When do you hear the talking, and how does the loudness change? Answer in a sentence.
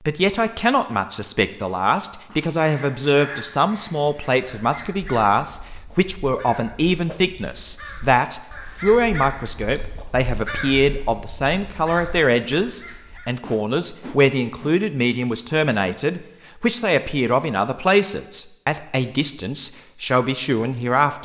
The talking can be heard from 0.1 to 21.2 s, at a steady volume.